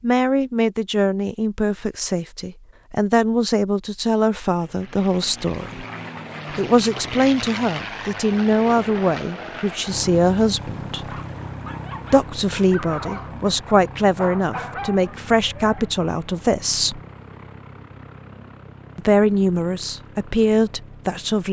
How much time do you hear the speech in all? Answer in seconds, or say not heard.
18 s.